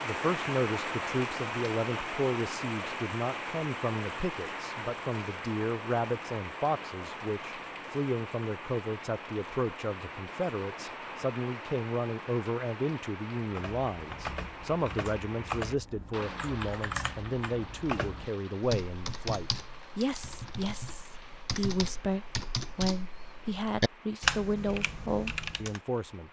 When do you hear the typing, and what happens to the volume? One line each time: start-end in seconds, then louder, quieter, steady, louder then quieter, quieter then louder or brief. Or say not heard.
13.3-25.8 louder.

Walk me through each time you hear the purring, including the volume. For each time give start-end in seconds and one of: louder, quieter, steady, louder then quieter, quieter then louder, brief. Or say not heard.
not heard.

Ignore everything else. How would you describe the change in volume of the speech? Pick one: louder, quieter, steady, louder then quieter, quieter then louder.
steady.